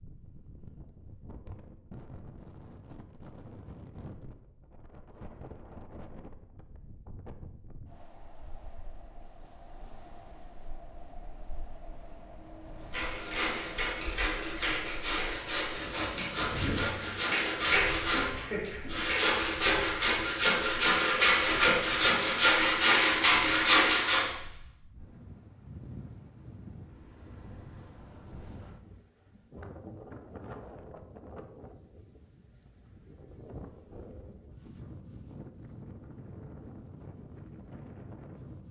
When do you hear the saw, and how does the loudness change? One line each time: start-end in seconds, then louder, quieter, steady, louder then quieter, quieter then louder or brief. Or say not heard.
12.9-24.3 louder.